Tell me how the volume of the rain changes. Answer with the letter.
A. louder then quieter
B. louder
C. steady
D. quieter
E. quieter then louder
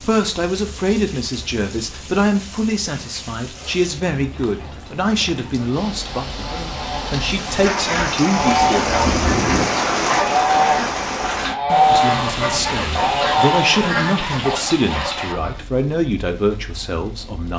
A.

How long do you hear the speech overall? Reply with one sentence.
You can hear the speech for 15 seconds altogether.